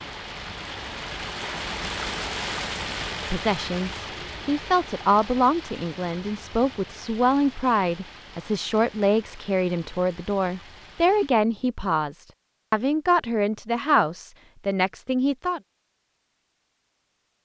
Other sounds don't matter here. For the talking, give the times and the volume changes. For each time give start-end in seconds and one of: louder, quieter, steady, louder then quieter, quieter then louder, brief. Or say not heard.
3.1-15.6 steady.